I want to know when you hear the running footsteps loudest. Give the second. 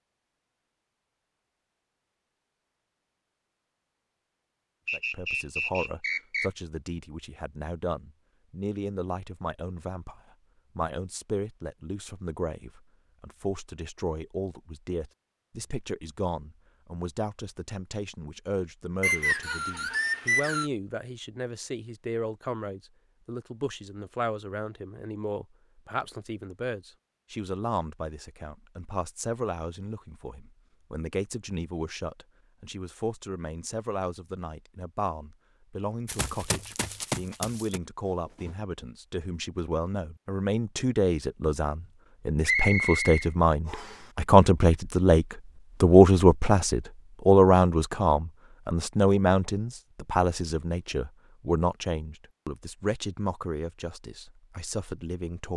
37 s.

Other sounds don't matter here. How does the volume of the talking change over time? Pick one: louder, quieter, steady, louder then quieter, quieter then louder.
louder.